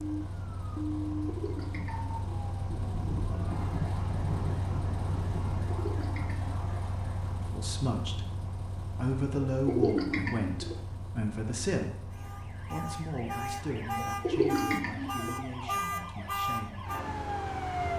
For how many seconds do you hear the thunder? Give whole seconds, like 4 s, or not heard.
3 s.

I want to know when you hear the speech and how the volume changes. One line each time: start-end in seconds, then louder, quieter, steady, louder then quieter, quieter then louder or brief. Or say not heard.
7.3-8.2 brief
8.9-16.9 quieter.